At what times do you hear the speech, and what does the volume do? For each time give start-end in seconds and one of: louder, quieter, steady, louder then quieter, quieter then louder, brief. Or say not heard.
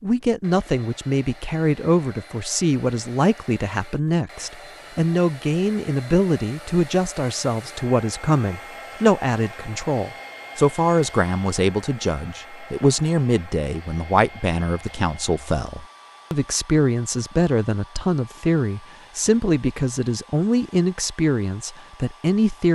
0.0-22.6 steady.